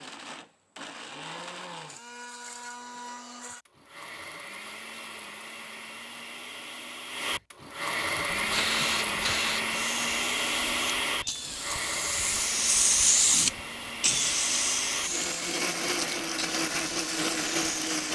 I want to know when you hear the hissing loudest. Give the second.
13 s.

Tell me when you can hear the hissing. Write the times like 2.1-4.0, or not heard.
8.2-18.0.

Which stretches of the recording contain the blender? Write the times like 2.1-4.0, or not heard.
0.0-18.0.